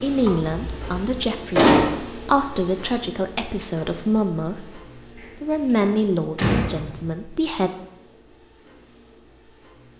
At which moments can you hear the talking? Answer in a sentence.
You can hear the talking from 0.0 to 7.7 s.